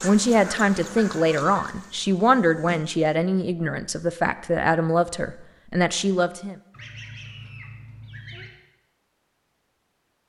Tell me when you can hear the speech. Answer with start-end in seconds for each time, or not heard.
0.0-6.5.